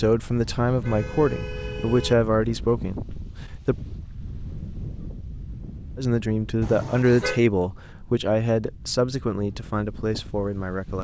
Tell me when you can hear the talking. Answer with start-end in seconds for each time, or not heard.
0.0-3.8, 6.0-10.9.